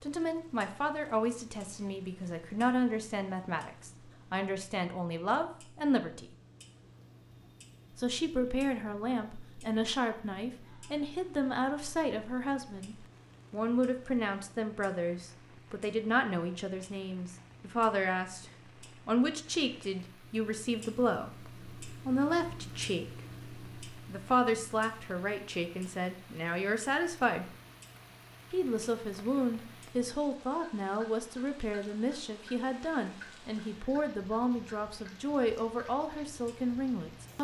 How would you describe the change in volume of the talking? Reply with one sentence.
The volume of the talking stays about the same.